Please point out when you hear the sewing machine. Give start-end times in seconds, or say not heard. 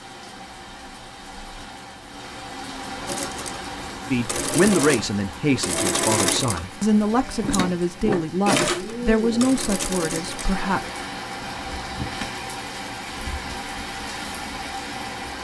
3.0-10.6.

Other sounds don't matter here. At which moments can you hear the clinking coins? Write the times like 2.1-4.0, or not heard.
not heard.